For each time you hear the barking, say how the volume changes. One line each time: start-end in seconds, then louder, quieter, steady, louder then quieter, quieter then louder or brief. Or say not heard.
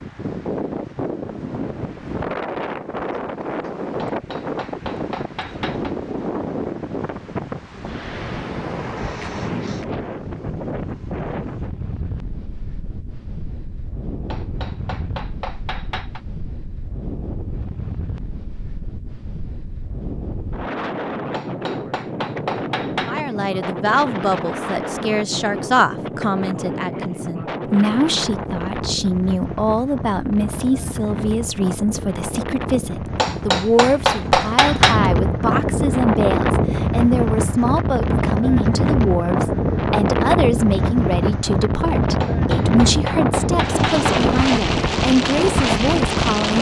not heard.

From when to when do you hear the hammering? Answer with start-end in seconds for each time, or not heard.
4.0-6.0, 14.3-16.2, 21.3-23.2, 33.1-35.1, 42.2-44.2.